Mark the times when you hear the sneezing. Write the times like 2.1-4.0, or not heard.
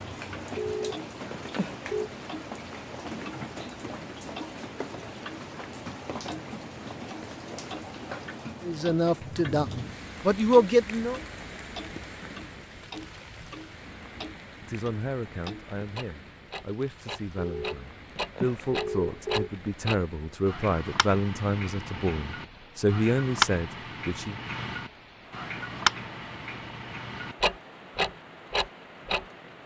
not heard.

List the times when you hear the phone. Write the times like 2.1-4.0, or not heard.
0.6-2.1, 17.4-19.5.